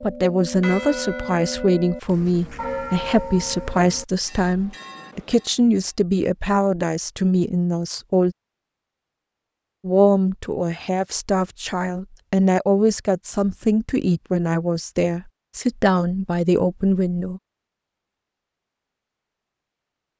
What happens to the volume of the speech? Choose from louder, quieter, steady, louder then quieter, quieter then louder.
steady.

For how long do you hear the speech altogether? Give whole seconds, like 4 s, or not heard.
16 s.